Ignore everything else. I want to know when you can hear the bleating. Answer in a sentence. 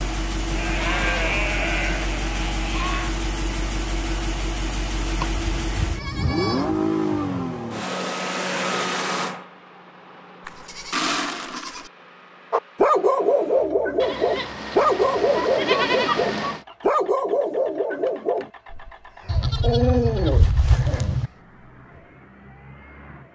You can hear the bleating from 0.5 to 3.1 s, from 5.2 to 6.8 s, from 10.4 to 11.9 s, from 14.0 to 16.6 s and from 19.2 to 21.3 s.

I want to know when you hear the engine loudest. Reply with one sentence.
The loudest moment of the engine is at 7 seconds.